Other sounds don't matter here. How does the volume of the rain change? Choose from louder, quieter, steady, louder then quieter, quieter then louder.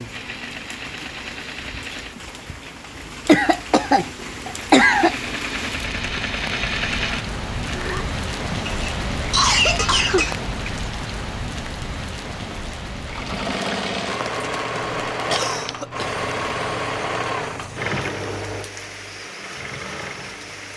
louder then quieter.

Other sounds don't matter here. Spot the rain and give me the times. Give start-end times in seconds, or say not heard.
0.0-20.7.